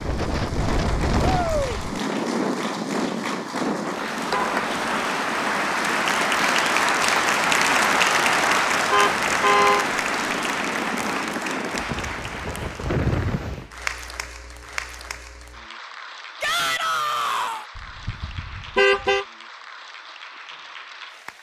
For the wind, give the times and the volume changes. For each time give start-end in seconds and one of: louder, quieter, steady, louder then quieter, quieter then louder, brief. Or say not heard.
0.0-13.7 quieter then louder.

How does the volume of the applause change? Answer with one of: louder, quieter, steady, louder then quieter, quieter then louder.
louder then quieter.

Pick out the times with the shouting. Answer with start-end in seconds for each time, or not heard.
1.2-1.8, 16.4-17.6.